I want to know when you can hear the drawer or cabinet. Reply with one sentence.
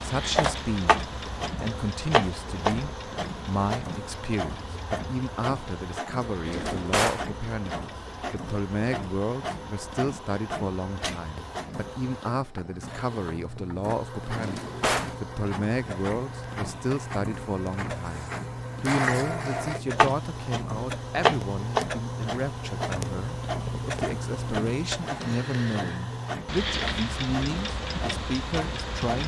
You can hear the drawer or cabinet from 6.5 to 7.2 s, from 14.3 to 15.2 s and from 25.0 to 25.4 s.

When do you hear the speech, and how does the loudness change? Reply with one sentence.
You can hear the speech from 0.0 to 29.2 s, at a steady volume.